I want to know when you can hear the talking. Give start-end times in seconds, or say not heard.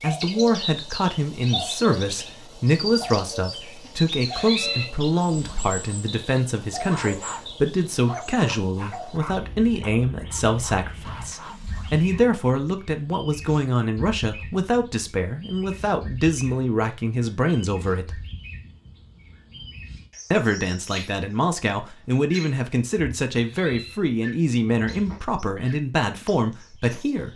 0.0-18.2, 20.3-27.3.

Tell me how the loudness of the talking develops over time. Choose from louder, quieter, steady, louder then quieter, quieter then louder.
steady.